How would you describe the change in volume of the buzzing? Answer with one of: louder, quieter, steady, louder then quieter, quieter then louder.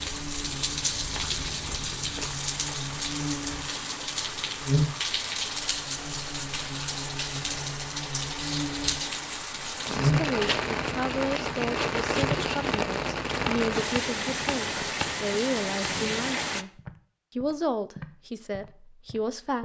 louder then quieter.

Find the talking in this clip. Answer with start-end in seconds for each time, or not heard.
9.8-19.6.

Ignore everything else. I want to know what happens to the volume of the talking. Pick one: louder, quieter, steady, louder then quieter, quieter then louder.
steady.